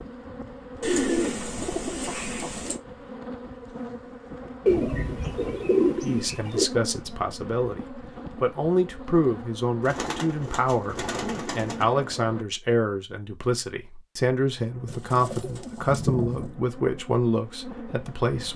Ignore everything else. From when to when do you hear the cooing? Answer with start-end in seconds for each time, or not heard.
0.8-2.8, 4.7-6.7, 9.8-11.8, 14.8-16.6.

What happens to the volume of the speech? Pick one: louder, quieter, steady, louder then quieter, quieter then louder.
steady.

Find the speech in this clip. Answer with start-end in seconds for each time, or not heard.
6.0-18.5.